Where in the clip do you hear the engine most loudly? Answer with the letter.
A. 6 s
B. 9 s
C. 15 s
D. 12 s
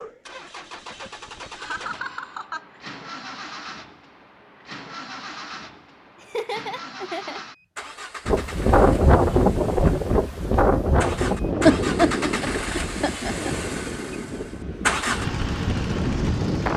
C.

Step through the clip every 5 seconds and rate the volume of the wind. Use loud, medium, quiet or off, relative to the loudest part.
off, loud, medium, medium.